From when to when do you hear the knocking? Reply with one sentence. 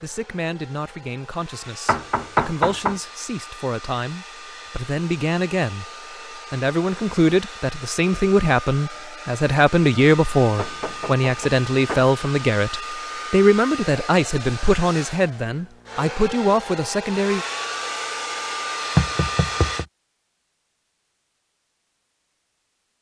You can hear the knocking from 1.9 to 3.0 s, from 10.6 to 12.1 s and from 18.9 to 19.9 s.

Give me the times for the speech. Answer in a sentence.
You can hear the speech from 0.0 to 5.8 s and from 6.5 to 17.4 s.